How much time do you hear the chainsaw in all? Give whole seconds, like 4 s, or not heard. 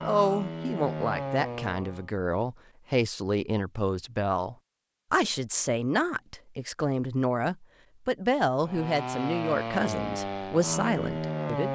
5 s.